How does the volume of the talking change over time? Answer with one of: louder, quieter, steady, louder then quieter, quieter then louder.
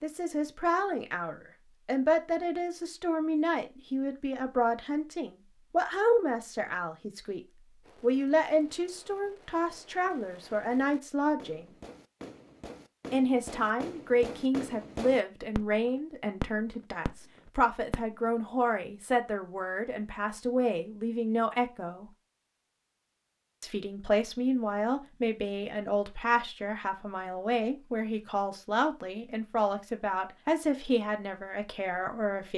steady.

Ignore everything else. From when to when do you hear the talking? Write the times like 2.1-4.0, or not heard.
0.0-11.8, 13.1-22.1, 23.6-32.5.